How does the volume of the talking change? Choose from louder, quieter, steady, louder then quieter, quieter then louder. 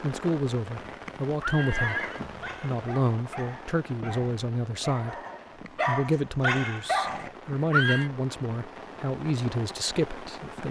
steady.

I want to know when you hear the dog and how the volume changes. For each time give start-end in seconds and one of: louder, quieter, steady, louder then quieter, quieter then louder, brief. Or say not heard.
1.8-7.2 louder.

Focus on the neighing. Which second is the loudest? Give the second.
8 s.